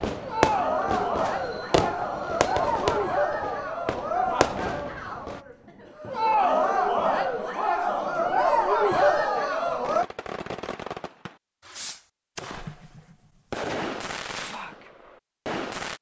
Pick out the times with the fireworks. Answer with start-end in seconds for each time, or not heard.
0.0-5.4, 9.8-15.9.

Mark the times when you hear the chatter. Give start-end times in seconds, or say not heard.
0.1-10.1.